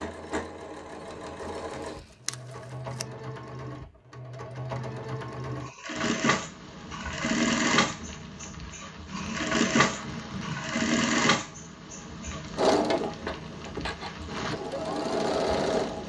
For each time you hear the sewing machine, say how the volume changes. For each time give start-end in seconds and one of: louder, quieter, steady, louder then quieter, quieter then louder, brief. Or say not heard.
0.0-16.0 louder.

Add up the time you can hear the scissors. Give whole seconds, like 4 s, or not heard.
2 s.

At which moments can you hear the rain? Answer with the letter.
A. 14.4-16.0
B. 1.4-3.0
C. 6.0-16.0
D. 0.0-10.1
C.